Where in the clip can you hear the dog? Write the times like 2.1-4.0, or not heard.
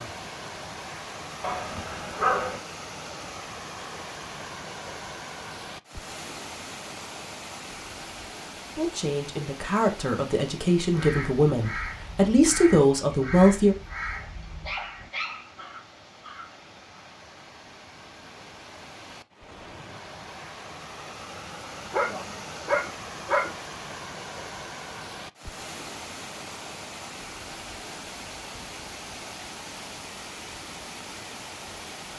1.4-2.6, 14.1-15.7, 21.7-23.5.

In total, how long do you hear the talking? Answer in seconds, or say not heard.
5 s.